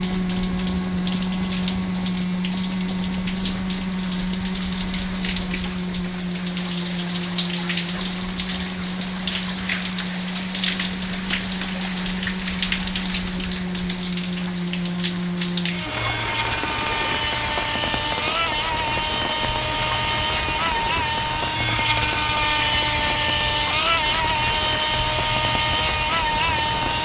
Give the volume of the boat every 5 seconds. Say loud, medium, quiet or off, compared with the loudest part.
loud, medium, medium, loud, loud, loud.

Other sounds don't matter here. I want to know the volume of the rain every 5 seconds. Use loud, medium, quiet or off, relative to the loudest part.
loud, loud, loud, loud, medium, medium.